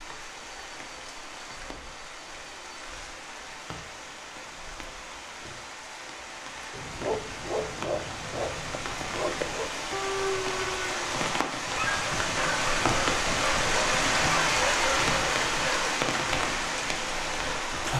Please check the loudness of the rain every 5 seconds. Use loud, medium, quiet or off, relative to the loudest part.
quiet, medium, loud, loud.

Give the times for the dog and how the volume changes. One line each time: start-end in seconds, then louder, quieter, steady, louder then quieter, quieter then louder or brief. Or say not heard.
6.7-15.9 steady.